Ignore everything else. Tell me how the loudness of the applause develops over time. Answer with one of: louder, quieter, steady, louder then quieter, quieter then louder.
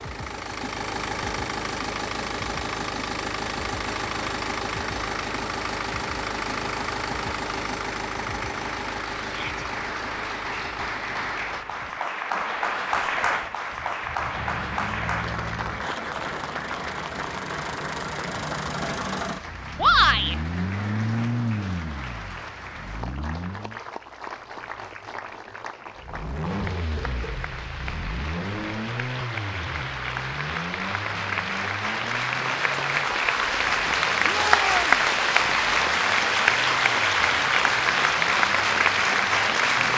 quieter then louder.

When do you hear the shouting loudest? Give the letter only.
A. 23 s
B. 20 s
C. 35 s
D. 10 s
B.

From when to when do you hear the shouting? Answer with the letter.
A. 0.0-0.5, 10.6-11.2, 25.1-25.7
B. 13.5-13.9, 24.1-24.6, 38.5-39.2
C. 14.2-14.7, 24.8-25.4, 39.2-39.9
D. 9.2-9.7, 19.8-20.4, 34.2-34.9
D.